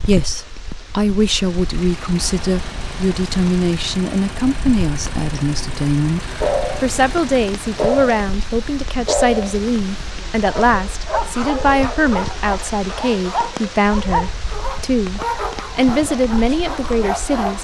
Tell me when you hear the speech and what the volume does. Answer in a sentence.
You can hear the speech from 0.0 to 17.6 s, at a steady volume.